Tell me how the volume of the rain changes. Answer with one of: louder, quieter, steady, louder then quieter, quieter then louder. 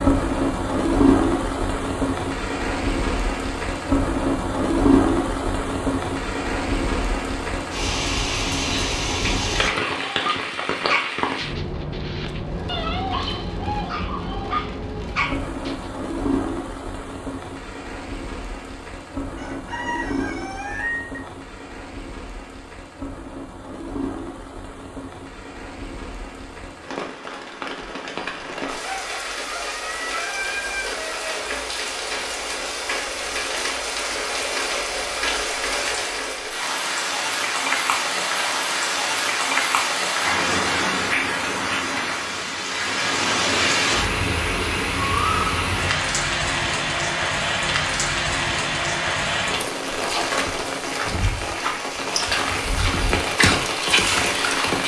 quieter then louder.